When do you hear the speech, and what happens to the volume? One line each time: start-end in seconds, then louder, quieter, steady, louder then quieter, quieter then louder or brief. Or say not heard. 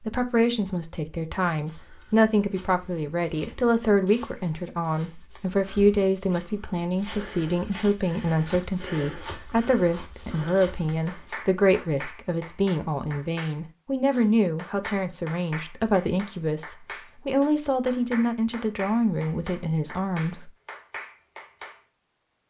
0.0-20.5 steady.